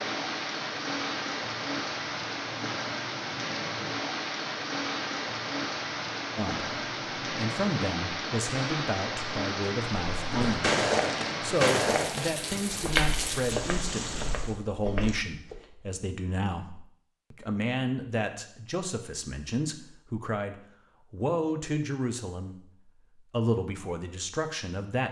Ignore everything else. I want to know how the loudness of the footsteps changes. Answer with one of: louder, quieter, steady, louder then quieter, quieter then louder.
quieter.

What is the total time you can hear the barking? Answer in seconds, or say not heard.
not heard.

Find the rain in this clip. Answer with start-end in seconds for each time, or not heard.
0.0-14.6.